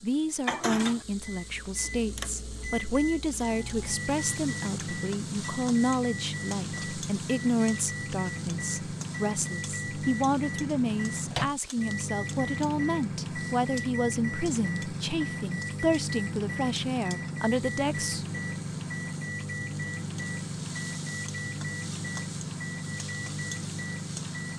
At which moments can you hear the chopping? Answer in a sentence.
The chopping can't be heard in this clip.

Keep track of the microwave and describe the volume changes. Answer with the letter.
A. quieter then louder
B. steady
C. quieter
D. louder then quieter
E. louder
B.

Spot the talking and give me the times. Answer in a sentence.
You can hear the talking from 0.0 to 18.4 s.